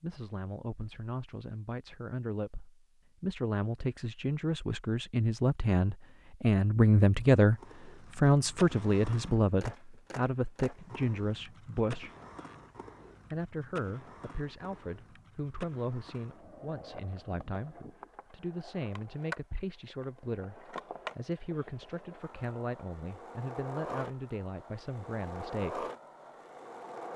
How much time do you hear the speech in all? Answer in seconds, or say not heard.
24 s.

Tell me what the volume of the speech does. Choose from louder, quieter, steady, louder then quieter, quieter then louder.
louder then quieter.